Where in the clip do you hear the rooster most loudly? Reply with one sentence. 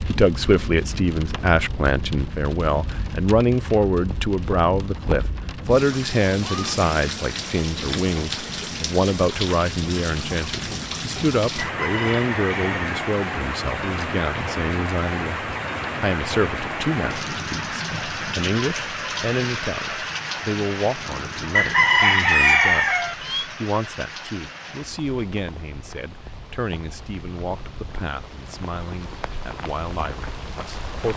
The volume of the rooster peaks at 22 seconds.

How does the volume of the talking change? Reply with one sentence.
The loudness of the talking goes down.